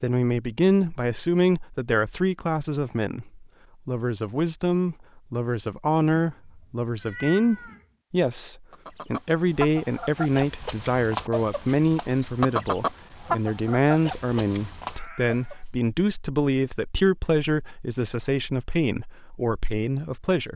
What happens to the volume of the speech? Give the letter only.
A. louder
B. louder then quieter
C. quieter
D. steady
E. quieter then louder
D.